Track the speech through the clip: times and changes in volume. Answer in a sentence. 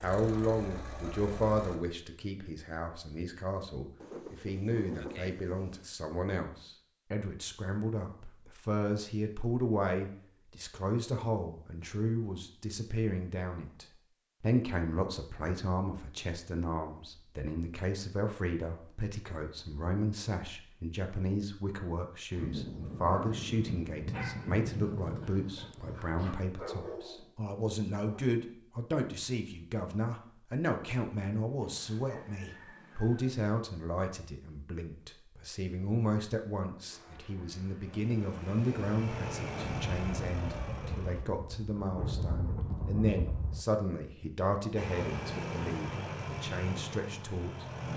The speech can be heard from 0.0 to 47.9 s, at a steady volume.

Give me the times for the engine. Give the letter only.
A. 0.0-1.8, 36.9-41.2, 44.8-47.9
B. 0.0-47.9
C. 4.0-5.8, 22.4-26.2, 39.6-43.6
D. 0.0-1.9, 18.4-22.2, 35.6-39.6
A.